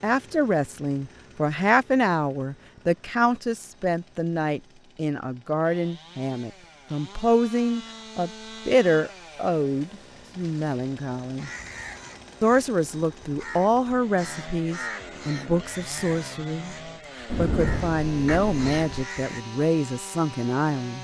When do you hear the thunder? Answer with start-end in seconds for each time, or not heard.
17.2-19.0.